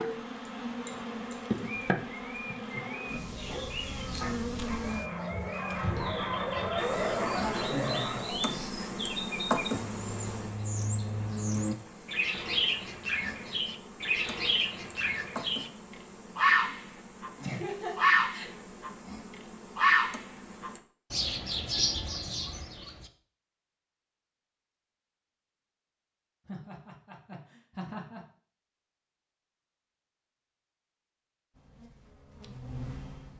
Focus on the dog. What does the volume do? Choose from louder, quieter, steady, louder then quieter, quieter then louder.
louder.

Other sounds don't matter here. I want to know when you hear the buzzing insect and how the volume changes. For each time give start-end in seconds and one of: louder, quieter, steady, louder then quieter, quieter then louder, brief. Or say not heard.
0.0-20.8 quieter
31.5-33.3 brief.